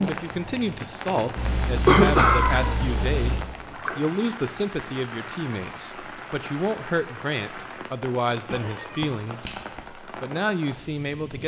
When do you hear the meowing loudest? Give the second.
2 s.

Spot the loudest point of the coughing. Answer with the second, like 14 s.
2 s.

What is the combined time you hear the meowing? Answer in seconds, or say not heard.
3 s.